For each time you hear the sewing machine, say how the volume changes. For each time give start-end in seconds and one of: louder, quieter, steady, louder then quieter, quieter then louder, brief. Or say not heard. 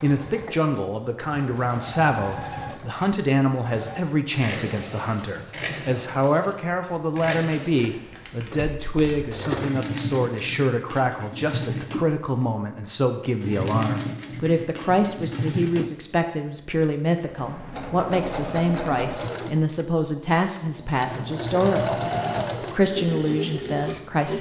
0.0-24.3 louder.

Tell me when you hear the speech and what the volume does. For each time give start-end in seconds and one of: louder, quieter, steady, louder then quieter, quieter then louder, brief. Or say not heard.
0.0-22.0 steady
22.6-24.3 brief.